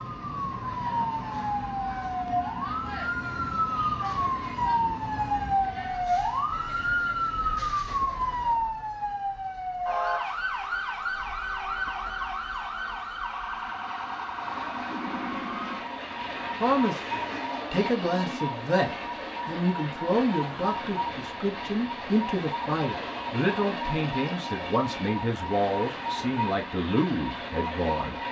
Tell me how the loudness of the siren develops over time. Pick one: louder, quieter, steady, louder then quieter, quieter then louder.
quieter.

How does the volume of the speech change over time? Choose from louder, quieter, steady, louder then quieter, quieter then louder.
steady.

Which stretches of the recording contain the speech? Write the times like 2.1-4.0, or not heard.
16.6-28.1.